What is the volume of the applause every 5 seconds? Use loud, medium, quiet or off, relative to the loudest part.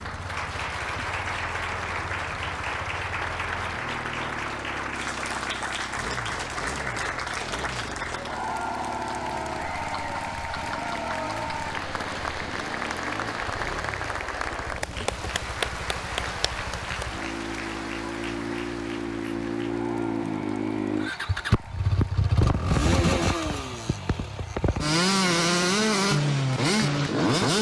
loud, loud, loud, loud, quiet, off.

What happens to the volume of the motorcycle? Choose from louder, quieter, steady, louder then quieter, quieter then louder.
louder.